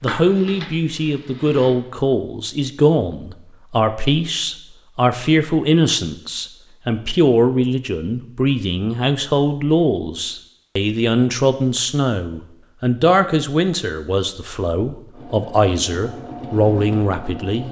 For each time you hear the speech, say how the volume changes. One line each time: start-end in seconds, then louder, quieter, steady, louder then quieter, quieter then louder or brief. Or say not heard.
0.0-17.6 steady.